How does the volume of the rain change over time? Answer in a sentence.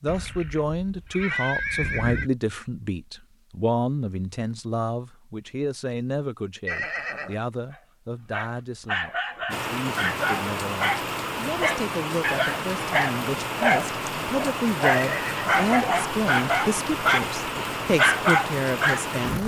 The volume of the rain stays about the same.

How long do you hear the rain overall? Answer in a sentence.
You can hear the rain for 10 seconds altogether.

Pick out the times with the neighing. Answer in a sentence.
The neighing can be heard from 0.1 to 2.3 s, from 6.7 to 7.3 s and from 14.8 to 16.1 s.